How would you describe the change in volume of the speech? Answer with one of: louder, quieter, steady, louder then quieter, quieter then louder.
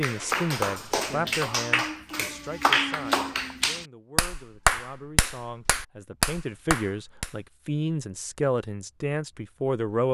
quieter then louder.